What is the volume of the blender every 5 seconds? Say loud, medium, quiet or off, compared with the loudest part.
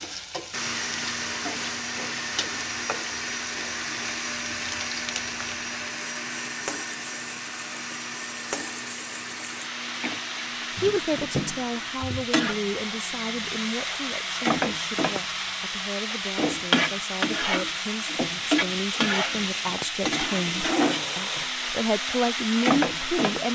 loud, loud, medium, medium, medium.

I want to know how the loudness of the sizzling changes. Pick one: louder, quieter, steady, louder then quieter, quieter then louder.
louder.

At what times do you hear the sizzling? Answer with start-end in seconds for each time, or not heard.
0.0-23.4.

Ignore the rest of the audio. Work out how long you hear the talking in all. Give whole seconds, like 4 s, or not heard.
13 s.